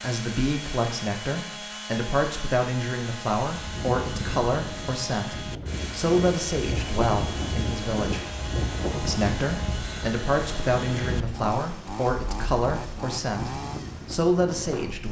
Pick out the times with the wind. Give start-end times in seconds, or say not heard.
3.5-15.0.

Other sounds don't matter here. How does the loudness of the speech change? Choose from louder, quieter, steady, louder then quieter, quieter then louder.
steady.